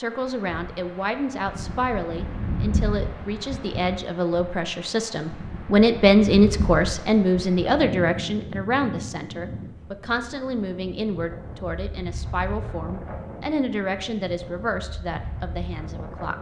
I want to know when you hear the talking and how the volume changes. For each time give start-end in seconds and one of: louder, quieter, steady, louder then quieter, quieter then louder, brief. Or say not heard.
0.0-16.3 louder then quieter.